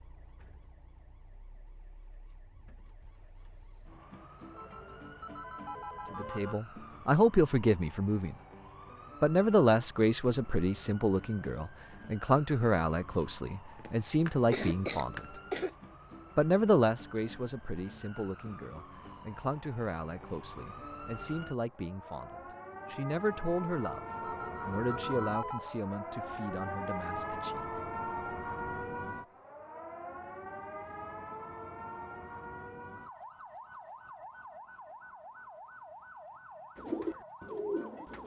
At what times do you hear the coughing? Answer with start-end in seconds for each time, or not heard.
13.8-15.8.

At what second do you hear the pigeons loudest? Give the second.
37 s.